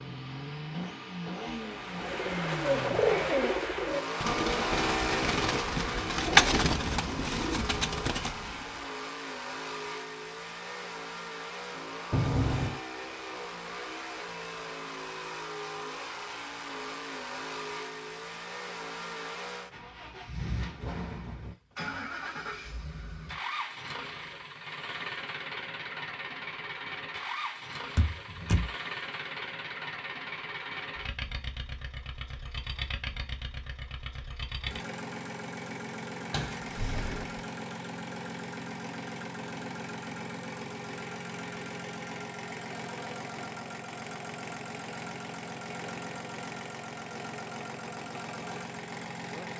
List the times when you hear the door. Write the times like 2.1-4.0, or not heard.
12.1-12.8, 27.9-28.8, 36.3-37.4.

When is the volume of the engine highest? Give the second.
5 s.